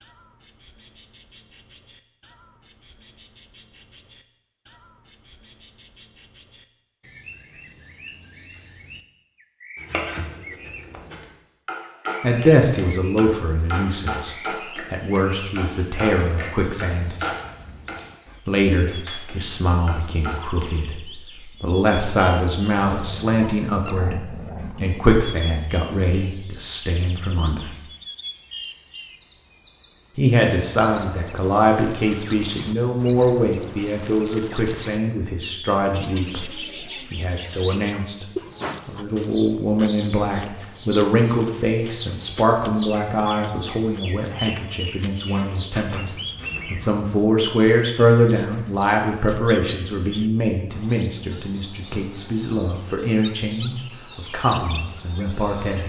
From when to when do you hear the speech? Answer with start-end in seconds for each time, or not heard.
12.2-17.1, 18.4-27.8, 30.1-36.5, 37.1-38.2, 38.9-55.8.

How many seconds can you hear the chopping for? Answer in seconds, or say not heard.
11 s.